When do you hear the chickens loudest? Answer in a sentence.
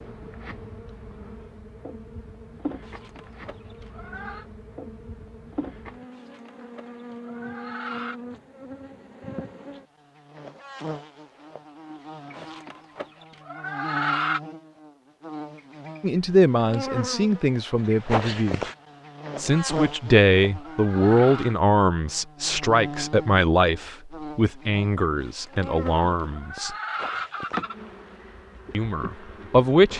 The volume of the chickens peaks at 14 seconds.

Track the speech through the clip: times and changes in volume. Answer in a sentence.
The speech can be heard briefly from 16.0 to 18.6 s; from 19.4 to 26.8 s, getting quieter; and briefly from 28.7 to 29.9 s.